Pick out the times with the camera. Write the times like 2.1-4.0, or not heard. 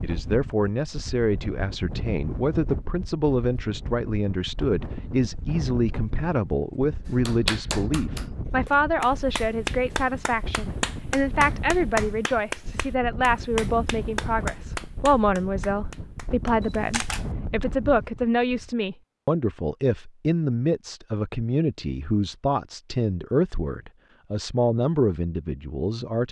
16.6-17.2.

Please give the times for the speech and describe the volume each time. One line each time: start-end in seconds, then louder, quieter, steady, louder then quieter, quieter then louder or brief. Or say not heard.
0.0-26.2 steady.